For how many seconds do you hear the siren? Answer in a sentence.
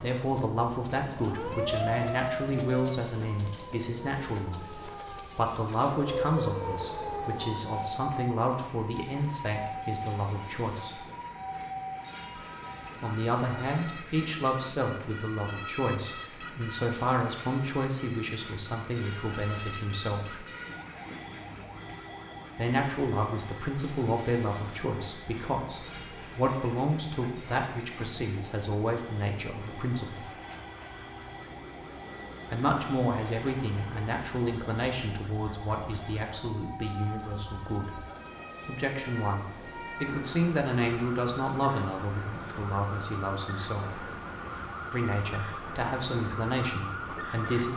You can hear the siren for 48 seconds altogether.